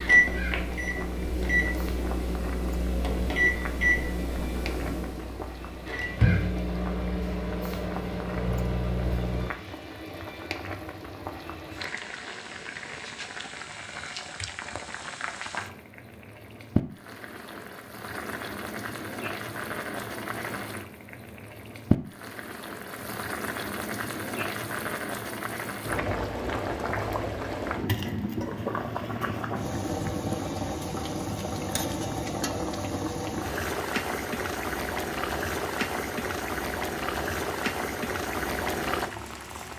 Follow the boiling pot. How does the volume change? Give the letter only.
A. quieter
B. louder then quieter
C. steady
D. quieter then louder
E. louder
E.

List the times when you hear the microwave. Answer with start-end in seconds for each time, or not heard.
0.0-9.5.